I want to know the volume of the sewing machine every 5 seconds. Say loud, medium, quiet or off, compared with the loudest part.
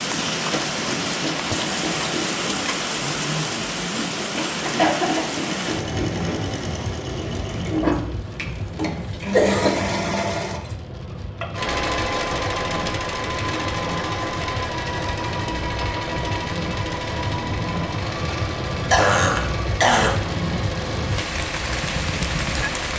medium, loud, loud, loud, medium.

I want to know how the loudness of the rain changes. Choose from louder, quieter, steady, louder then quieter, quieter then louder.
quieter then louder.